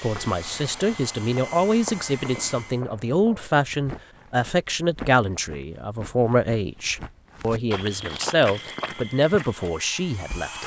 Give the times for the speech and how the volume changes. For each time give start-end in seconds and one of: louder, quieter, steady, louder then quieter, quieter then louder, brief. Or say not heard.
0.0-10.6 steady.